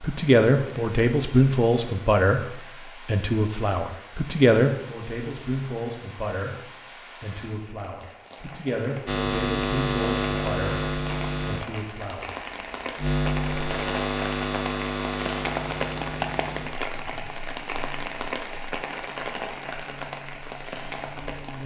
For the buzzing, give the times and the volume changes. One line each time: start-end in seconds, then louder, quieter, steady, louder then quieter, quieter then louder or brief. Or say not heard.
9.1-21.6 quieter.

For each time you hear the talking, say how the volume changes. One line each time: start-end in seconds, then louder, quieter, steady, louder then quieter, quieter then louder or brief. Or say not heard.
0.0-12.3 quieter.